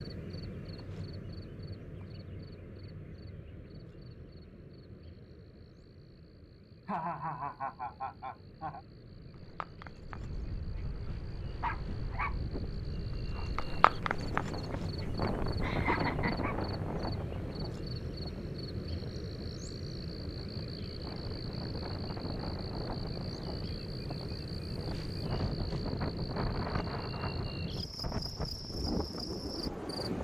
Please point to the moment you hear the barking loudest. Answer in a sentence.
The loudest moment of the barking is at 14 seconds.